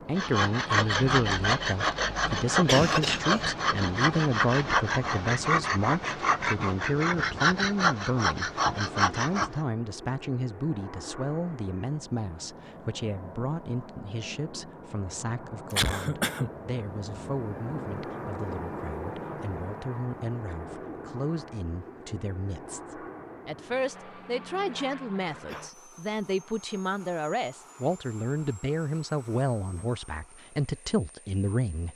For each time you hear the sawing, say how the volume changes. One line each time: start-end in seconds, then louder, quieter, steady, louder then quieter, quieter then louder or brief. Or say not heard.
0.1-9.5 steady.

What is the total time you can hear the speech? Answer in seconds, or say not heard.
32 s.